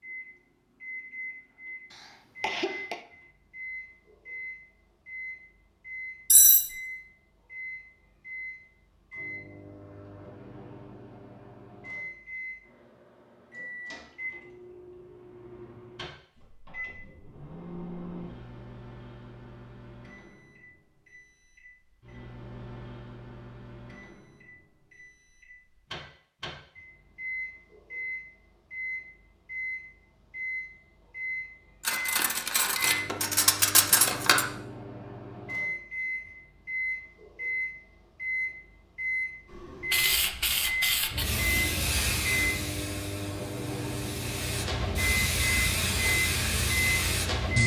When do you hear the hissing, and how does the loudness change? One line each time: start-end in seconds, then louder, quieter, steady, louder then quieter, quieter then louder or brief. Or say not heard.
39.5-47.6 quieter then louder.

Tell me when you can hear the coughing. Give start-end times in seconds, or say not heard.
1.9-3.0.